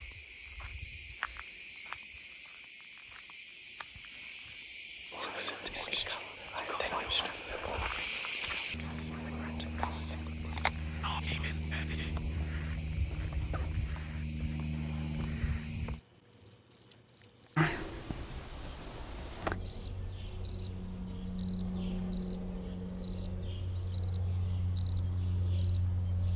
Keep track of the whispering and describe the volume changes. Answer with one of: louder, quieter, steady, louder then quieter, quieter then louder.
quieter.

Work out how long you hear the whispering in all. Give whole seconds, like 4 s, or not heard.
7 s.